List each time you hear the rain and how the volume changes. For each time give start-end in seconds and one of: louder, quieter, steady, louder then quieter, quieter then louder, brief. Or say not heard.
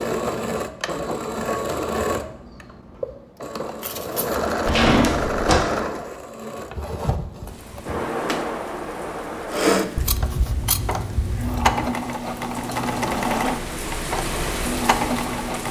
7.5-15.6 louder.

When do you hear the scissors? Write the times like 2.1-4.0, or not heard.
3.8-4.4, 9.9-11.8.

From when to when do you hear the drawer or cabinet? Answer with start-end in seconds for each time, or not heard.
4.7-5.5.